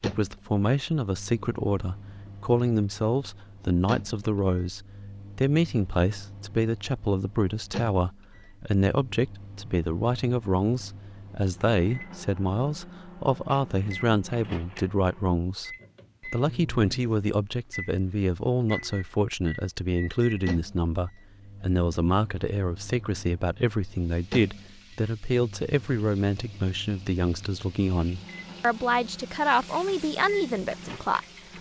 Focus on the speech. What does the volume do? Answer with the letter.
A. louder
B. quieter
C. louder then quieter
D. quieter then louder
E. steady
E.